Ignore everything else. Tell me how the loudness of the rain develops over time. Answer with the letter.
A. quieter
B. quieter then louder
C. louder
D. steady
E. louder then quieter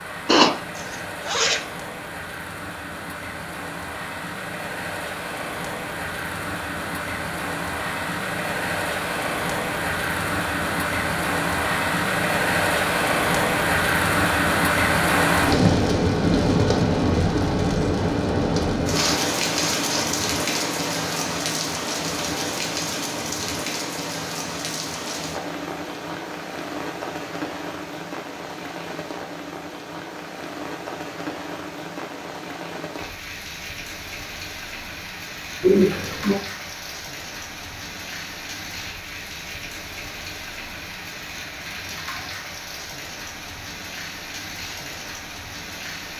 E.